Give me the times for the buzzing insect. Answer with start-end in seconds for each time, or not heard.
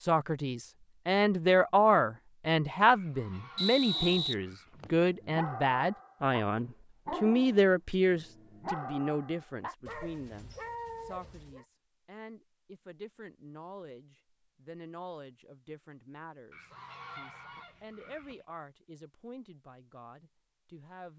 not heard.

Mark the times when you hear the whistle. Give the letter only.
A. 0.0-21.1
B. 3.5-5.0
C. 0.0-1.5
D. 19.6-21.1
B.